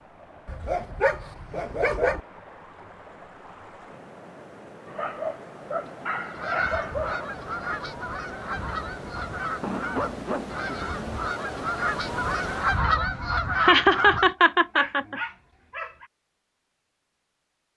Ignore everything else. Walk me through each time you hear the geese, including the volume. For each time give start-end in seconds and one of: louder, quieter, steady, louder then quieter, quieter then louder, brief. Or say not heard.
6.3-14.3 louder.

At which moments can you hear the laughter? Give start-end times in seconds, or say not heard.
13.6-15.2.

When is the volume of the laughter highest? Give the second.
14 s.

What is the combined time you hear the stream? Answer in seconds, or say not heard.
13 s.